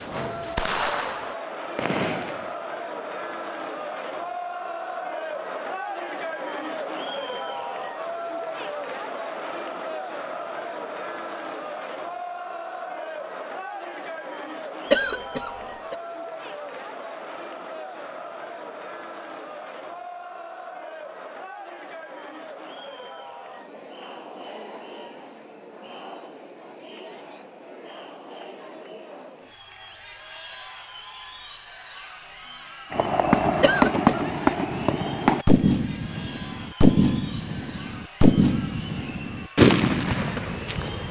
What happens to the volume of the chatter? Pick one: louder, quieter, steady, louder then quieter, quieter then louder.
quieter.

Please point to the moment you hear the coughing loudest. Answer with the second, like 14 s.
15 s.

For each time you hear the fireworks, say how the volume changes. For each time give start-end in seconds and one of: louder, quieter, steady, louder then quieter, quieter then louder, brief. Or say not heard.
0.0-2.5 brief
32.9-41.0 steady.